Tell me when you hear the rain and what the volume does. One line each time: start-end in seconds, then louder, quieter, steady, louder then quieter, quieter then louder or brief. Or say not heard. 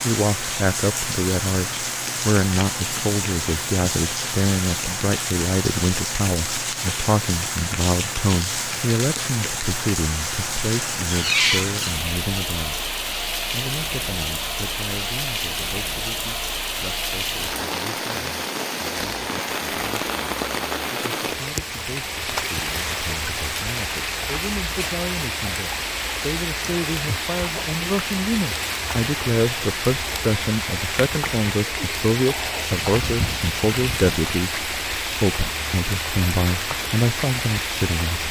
0.0-38.2 steady.